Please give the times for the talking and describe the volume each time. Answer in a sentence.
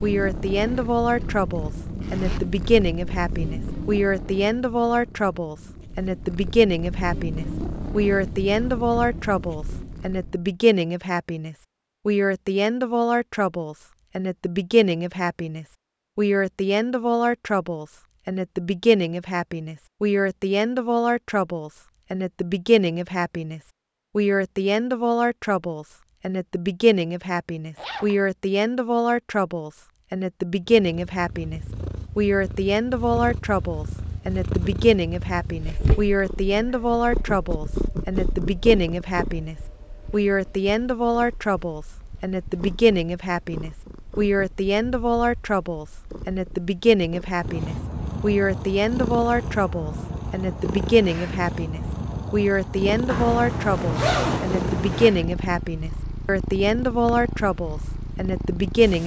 The talking can be heard from 0.0 to 59.0 s, at a steady volume.